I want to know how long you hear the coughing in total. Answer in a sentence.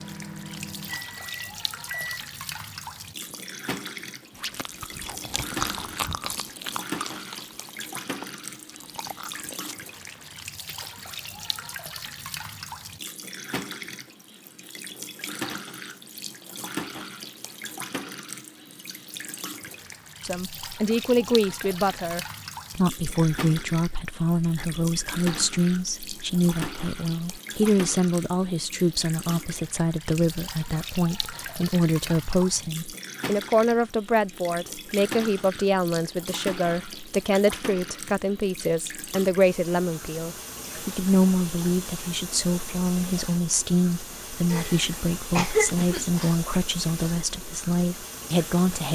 You can hear the coughing for 2 seconds altogether.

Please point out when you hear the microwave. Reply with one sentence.
The microwave can be heard from 0.0 to 2.2 s.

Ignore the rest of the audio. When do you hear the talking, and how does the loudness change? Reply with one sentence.
The talking can be heard from 20.2 to 48.9 s, at a steady volume.